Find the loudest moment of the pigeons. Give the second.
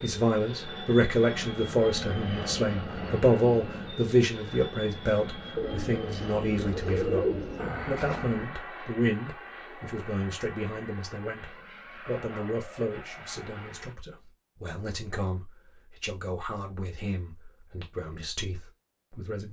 7 s.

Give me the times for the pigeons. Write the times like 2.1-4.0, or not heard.
5.5-8.5.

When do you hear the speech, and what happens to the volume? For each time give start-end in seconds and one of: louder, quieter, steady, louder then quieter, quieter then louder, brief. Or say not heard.
0.0-19.4 quieter.